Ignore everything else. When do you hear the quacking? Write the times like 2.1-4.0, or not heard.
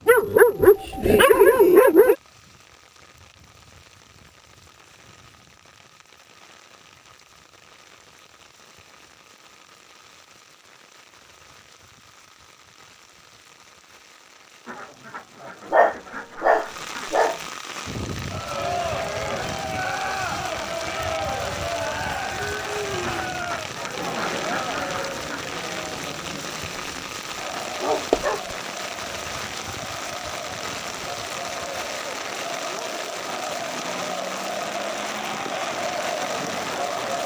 14.7-17.1, 23.0-25.4.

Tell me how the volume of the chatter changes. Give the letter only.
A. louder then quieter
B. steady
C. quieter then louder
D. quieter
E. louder
C.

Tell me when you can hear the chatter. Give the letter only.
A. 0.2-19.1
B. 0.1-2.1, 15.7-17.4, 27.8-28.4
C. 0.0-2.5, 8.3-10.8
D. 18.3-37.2
D.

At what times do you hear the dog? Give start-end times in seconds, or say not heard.
0.1-2.1, 15.7-17.4, 27.8-28.4.